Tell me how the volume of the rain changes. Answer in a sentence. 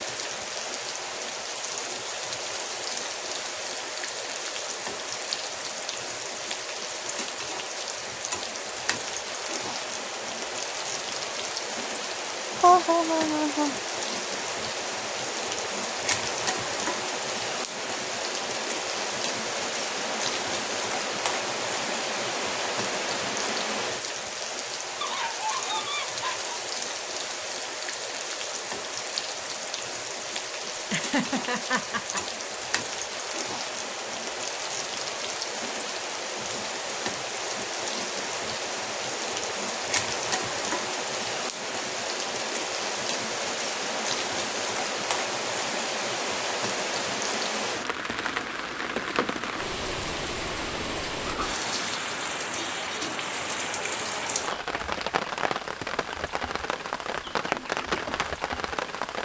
The volume of the rain stays about the same.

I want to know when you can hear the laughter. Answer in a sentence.
You can hear the laughter from 12.6 to 13.8 s and from 30.9 to 32.2 s.